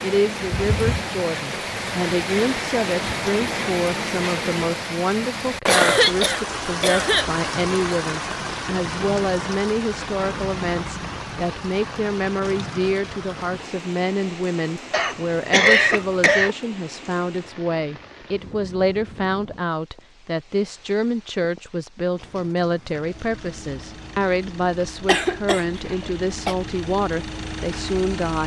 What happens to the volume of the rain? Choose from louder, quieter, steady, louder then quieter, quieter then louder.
quieter.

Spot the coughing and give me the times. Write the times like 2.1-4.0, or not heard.
5.7-7.2, 14.9-16.6, 25.1-26.6.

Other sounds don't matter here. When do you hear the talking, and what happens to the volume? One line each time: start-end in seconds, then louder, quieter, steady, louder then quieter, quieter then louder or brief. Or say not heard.
0.0-28.4 steady.